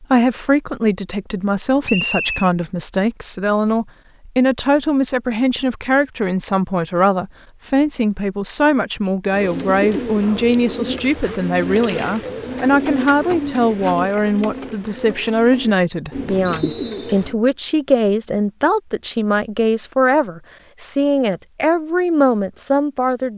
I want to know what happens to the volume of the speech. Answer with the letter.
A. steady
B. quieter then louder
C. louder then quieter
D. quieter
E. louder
A.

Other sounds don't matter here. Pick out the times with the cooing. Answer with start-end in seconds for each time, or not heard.
9.3-17.4.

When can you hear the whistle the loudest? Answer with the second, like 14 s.
2 s.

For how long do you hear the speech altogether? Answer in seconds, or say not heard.
23 s.